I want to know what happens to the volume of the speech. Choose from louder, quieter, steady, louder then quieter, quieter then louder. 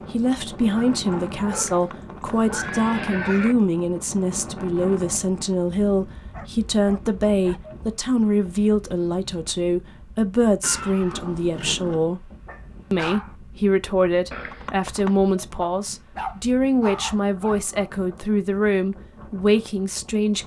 steady.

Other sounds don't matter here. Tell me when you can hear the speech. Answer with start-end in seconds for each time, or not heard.
0.1-12.3, 12.9-20.4.